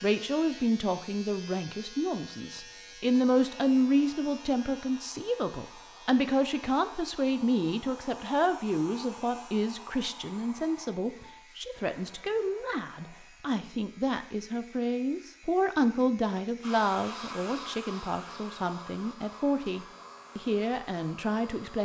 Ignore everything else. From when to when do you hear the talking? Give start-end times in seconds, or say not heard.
0.0-21.8.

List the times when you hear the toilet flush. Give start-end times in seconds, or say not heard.
not heard.